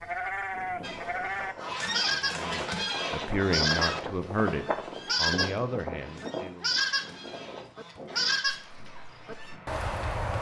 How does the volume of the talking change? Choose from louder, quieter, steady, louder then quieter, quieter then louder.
louder then quieter.